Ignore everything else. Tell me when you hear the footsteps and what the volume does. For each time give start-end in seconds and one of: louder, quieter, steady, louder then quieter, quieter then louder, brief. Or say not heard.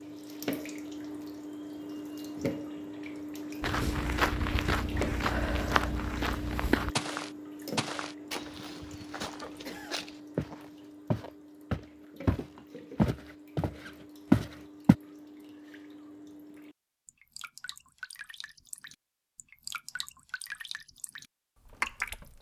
3.6-14.9 quieter then louder.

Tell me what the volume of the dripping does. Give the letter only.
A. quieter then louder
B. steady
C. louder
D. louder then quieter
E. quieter
A.